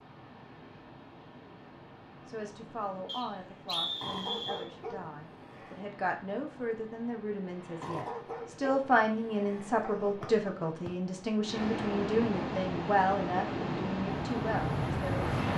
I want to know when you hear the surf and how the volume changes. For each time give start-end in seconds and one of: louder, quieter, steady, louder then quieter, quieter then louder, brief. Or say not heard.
0.0-15.5 louder.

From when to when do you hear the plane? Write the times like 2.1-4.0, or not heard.
14.1-15.5.